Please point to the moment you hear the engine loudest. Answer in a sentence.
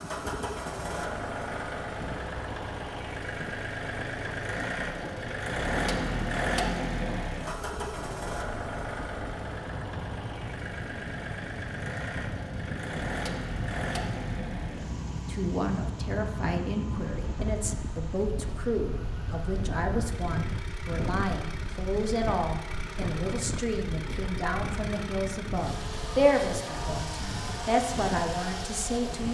The loudest moment of the engine is at 6 seconds.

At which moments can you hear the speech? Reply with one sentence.
The speech can be heard from 15.2 to 29.3 s.